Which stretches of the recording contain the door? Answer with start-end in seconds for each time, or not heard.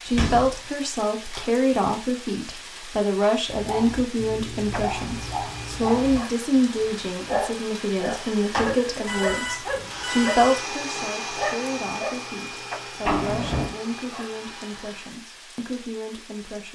0.1-0.7, 8.5-9.3, 13.1-13.7.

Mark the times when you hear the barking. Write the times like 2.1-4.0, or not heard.
3.5-12.1.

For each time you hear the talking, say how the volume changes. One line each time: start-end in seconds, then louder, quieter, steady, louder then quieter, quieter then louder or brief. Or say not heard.
0.0-16.7 quieter.